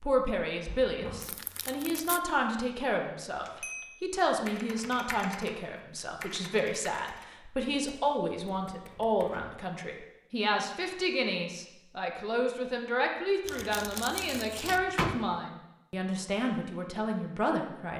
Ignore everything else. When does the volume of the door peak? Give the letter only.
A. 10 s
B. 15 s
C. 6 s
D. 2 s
B.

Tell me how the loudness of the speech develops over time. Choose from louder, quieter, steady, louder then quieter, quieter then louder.
steady.